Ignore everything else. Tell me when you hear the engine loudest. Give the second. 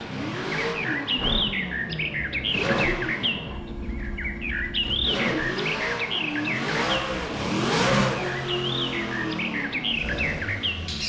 8 s.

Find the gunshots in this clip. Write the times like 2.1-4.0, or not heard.
not heard.